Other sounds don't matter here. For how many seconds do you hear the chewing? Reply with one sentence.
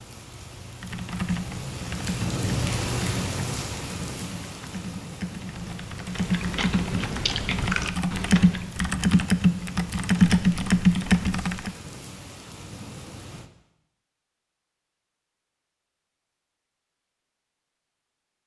You can hear the chewing for 3 seconds altogether.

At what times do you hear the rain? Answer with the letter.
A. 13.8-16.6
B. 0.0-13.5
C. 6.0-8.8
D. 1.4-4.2
B.